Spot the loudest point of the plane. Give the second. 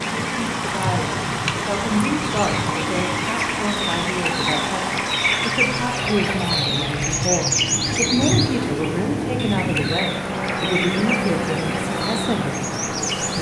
11 s.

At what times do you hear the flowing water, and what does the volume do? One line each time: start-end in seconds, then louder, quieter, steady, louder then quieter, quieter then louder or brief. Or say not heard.
0.0-13.3 quieter.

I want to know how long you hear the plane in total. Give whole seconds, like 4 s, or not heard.
13 s.